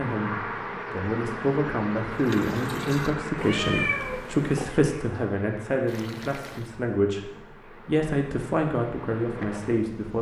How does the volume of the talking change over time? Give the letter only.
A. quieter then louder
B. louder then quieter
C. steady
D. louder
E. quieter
C.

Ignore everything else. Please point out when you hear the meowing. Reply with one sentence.
The meowing can be heard from 3.4 to 4.7 s.